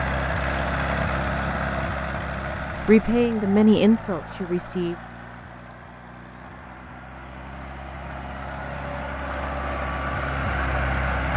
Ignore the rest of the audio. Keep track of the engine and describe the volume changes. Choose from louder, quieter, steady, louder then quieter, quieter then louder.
quieter then louder.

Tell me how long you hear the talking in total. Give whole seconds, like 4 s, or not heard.
2 s.